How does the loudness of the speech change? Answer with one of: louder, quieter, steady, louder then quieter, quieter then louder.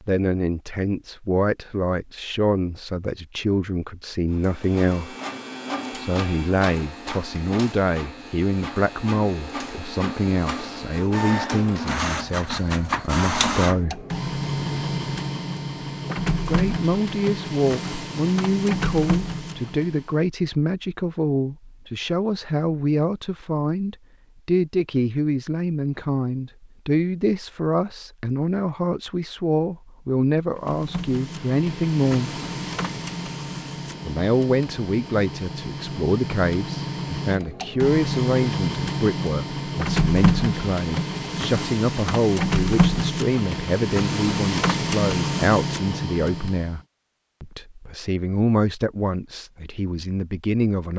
steady.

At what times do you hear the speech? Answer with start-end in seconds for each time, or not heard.
0.0-5.2, 6.0-14.1, 16.4-32.4, 34.0-46.8, 47.4-50.9.